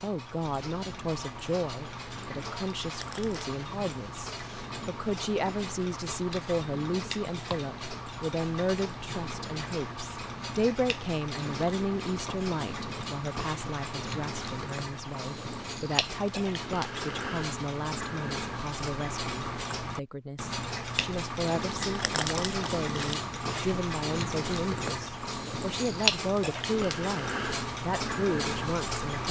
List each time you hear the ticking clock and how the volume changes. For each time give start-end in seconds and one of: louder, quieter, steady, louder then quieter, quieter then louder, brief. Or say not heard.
0.0-29.2 louder.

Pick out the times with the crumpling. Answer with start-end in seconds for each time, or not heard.
2.9-3.5, 21.8-23.3.